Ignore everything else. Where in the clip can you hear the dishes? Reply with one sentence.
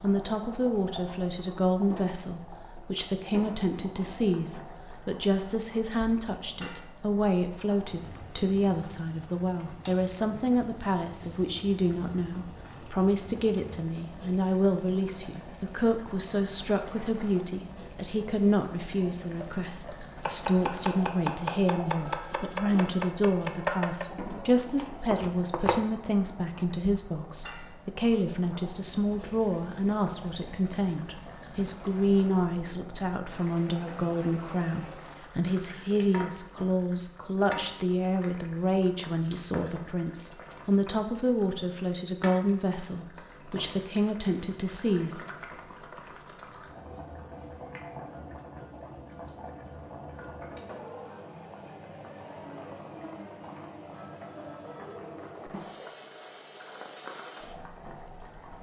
The dishes can't be heard in this clip.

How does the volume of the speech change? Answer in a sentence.
The loudness of the speech stays about the same.